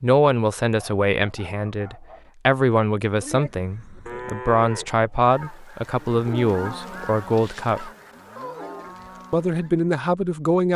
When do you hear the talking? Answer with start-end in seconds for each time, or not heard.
0.0-7.9, 9.3-10.7.